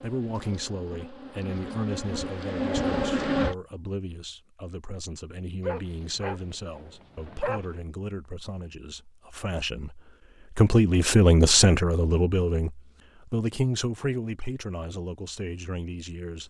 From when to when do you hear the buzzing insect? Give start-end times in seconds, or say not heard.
0.0-3.5.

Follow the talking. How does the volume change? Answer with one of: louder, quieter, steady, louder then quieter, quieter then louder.
louder then quieter.